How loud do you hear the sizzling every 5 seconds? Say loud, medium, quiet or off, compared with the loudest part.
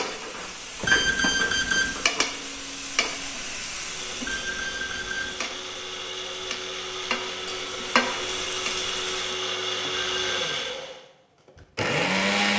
loud, loud, off.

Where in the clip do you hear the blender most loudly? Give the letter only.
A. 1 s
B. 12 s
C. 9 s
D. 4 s
B.